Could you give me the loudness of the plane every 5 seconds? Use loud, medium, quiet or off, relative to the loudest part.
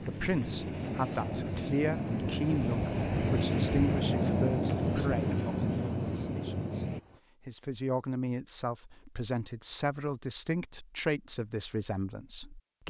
loud, loud, off.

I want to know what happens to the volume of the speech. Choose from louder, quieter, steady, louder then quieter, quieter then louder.
quieter then louder.